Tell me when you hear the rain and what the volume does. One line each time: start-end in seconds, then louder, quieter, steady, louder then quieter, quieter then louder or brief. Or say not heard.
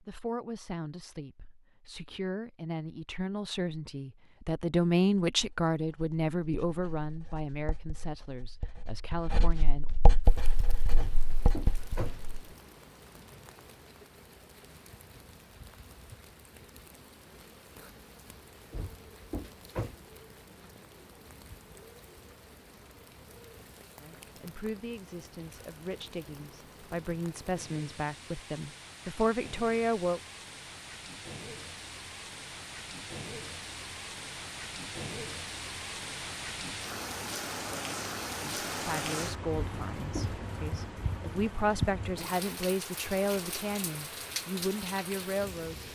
10.2-45.9 louder.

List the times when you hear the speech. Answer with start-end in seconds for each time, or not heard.
0.0-9.9, 24.0-30.2, 38.4-45.9.